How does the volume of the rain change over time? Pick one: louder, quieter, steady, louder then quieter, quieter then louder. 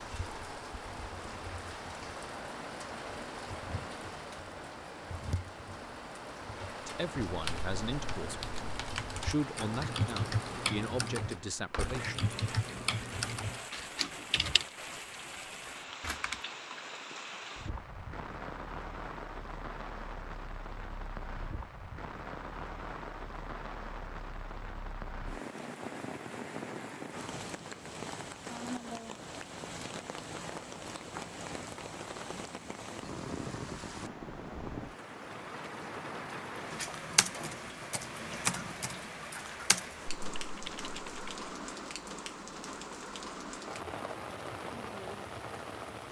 steady.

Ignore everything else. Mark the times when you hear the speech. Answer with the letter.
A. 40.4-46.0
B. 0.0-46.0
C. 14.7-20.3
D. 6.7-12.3
D.